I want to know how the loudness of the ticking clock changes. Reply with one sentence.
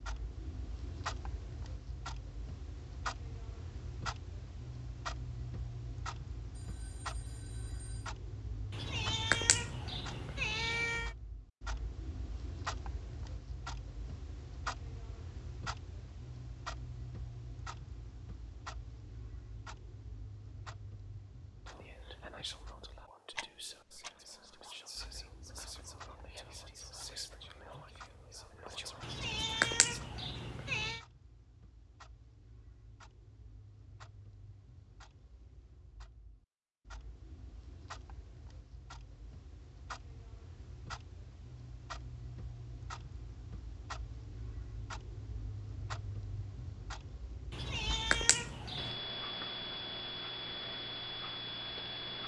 The loudness of the ticking clock goes down, then up.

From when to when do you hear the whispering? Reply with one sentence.
You can hear the whispering from 21.6 to 30.0 s.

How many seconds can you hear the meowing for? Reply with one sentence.
The meowing can be heard for 6 seconds in total.